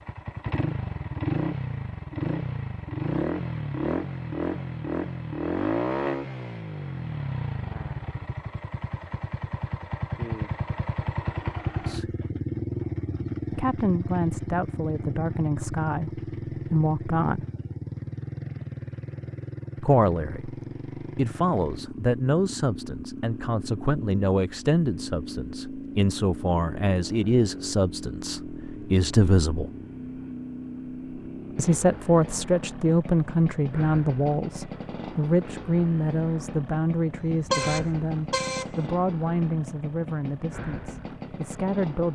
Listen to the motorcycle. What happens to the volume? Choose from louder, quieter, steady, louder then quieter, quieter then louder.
quieter.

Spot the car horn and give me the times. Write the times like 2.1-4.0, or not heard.
37.3-38.8.